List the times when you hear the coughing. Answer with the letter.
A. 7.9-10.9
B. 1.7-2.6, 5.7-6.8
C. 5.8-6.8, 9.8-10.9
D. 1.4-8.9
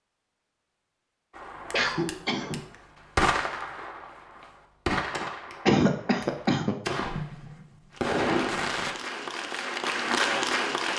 B.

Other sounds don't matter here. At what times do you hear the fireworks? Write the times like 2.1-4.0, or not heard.
1.4-8.9.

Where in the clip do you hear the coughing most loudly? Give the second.
6 s.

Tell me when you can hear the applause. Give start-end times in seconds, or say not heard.
7.9-10.9.